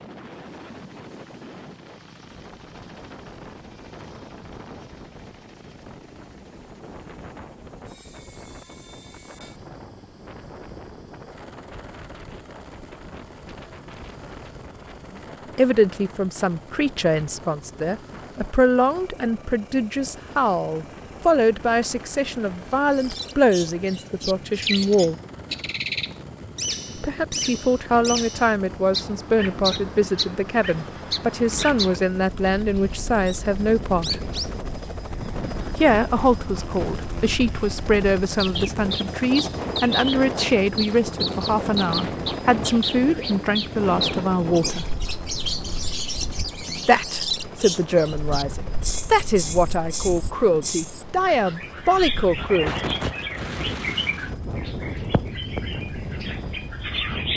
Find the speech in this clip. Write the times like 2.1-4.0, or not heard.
15.6-25.1, 26.9-34.2, 35.8-44.9, 46.9-53.0.